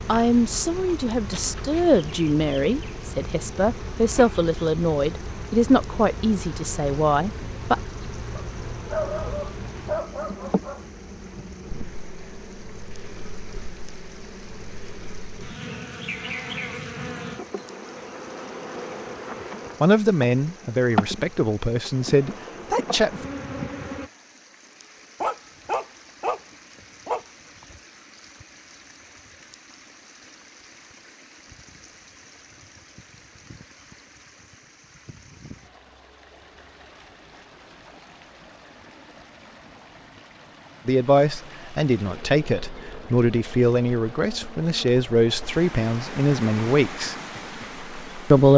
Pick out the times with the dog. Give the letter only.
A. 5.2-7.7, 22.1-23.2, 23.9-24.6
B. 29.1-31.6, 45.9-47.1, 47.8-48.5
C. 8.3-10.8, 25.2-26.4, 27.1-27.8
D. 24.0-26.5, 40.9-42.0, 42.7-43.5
C.